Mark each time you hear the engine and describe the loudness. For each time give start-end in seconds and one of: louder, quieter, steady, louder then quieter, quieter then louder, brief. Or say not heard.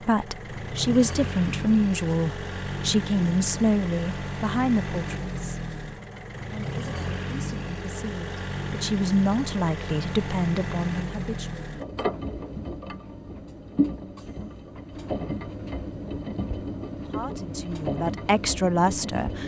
0.0-19.4 steady.